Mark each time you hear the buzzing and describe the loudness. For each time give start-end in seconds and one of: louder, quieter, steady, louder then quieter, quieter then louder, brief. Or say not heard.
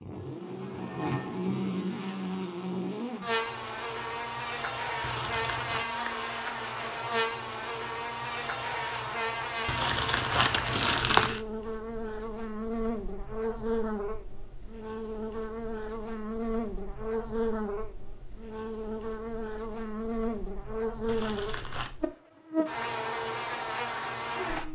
0.0-24.7 steady.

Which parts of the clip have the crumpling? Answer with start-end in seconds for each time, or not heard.
5.0-5.8, 9.7-11.4, 21.1-21.9.